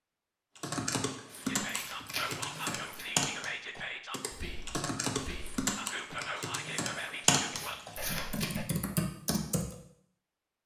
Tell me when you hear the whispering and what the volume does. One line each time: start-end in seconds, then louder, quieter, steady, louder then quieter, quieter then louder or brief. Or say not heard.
1.4-8.7 quieter then louder.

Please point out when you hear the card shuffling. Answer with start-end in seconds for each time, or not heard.
1.3-3.1, 7.5-8.5.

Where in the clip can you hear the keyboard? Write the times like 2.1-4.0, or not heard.
0.6-9.8.